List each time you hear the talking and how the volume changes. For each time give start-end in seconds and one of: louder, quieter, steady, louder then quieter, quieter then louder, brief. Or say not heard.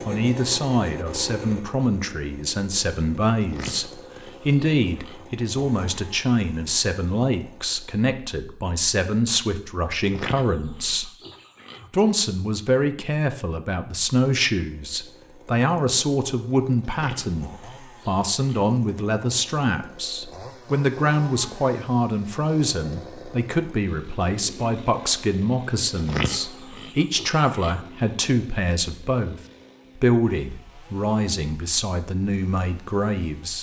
0.1-11.1 steady
11.9-33.5 steady.